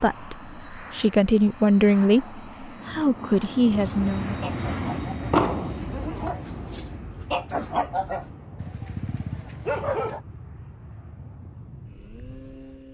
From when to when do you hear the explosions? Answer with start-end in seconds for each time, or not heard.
5.3-5.8.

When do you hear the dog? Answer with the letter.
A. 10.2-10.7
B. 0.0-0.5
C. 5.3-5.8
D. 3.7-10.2
D.